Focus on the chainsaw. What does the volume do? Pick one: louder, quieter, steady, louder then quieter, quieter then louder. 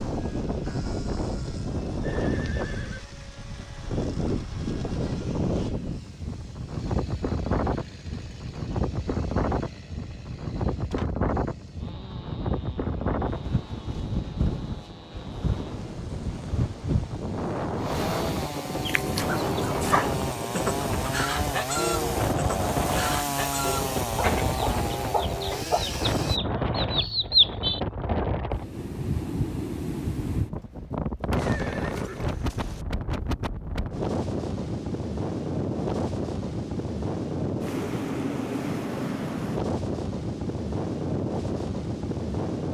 louder.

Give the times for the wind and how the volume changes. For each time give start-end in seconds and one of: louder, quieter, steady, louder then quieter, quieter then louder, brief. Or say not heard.
0.0-42.6 steady.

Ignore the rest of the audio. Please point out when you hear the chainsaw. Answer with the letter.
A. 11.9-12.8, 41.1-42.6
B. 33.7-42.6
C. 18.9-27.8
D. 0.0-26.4
D.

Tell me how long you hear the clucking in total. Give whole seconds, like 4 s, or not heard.
9 s.